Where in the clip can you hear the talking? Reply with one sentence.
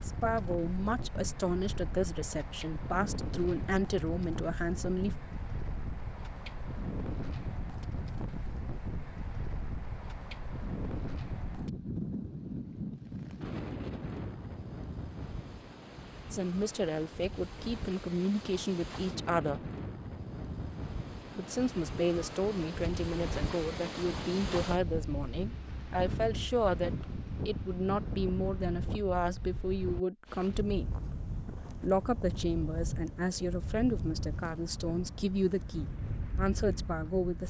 The talking can be heard from 0.1 to 5.2 s, from 16.3 to 19.6 s and from 21.4 to 37.4 s.